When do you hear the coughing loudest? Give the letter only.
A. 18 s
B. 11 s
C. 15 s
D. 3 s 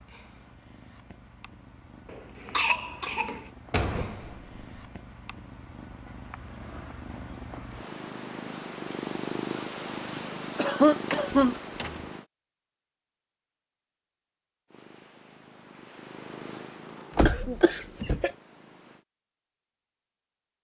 B.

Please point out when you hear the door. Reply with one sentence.
You can hear the door from 3.7 to 4.7 s, from 11.1 to 12.1 s and from 17.1 to 18.2 s.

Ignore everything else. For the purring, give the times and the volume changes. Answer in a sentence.
You can hear the purring from 0.0 to 12.2 s, getting louder; and from 14.7 to 19.1 s, getting louder then quieter.